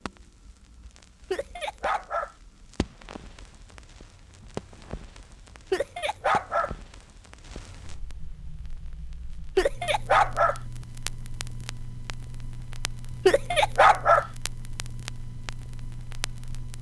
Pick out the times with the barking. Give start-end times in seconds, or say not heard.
1.3-2.4, 5.7-6.8, 9.6-10.6, 13.2-14.3.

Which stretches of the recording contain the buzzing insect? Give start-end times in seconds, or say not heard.
not heard.